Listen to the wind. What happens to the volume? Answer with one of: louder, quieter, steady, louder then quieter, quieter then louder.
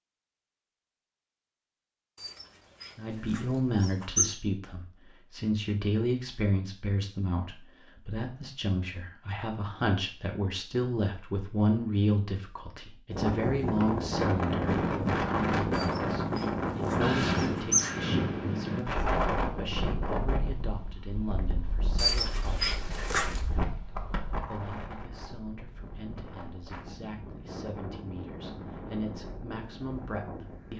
quieter.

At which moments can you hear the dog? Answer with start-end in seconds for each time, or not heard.
2.1-4.2, 15.8-17.9, 21.9-23.4.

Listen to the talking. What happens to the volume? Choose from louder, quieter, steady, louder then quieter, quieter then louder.
quieter.